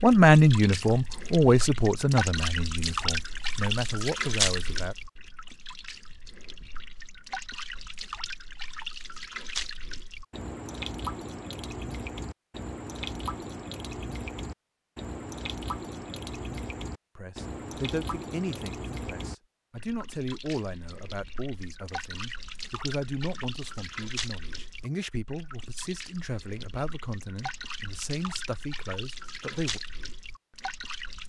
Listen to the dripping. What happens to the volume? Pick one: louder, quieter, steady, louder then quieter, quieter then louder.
quieter.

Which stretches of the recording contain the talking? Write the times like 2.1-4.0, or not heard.
0.0-5.0, 17.1-29.8.